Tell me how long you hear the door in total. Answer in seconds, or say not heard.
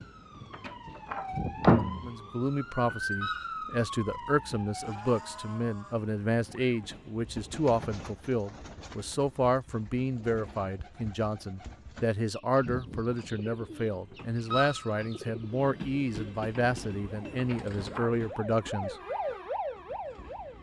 2 s.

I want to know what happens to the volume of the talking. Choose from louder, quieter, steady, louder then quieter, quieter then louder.
steady.